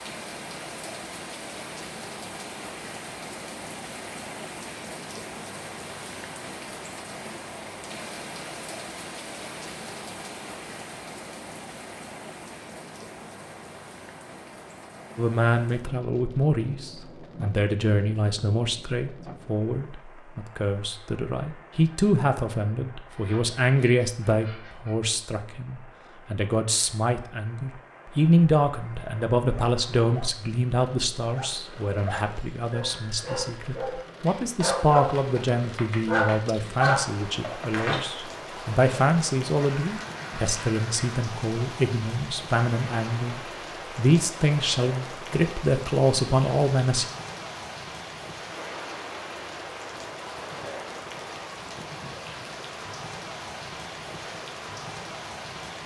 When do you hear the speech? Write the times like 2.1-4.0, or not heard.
15.2-47.0.